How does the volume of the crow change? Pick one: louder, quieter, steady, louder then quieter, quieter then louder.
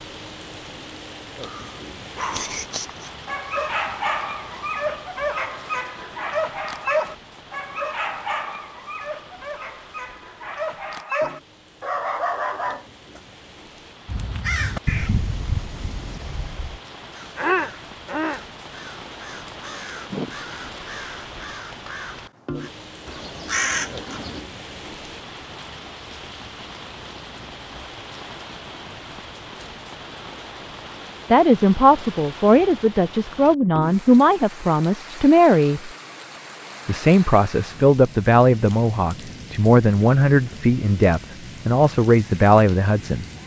quieter then louder.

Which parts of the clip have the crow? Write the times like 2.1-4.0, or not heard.
14.1-24.4.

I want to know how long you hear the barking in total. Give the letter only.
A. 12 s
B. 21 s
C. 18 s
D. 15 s
A.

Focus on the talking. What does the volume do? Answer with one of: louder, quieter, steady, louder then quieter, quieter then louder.
steady.